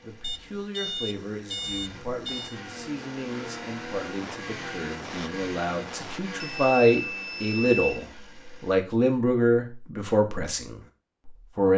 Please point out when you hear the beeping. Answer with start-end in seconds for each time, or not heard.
0.2-2.5, 6.4-8.1.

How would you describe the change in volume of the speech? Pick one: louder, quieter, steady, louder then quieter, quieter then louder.
louder.